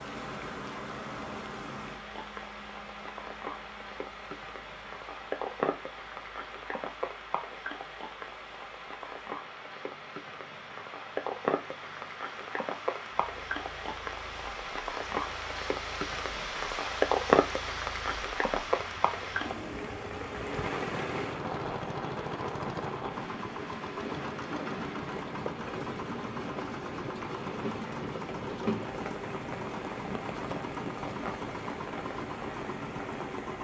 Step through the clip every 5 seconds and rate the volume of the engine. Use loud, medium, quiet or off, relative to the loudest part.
medium, quiet, quiet, quiet, loud, loud, loud.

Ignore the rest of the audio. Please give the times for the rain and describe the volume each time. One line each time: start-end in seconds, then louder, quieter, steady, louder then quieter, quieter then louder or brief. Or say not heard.
0.0-33.5 louder then quieter.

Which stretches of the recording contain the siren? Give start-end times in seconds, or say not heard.
not heard.